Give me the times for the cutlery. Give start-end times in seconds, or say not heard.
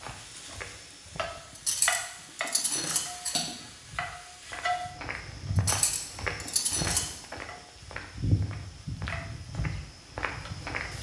1.6-3.5, 5.5-7.0.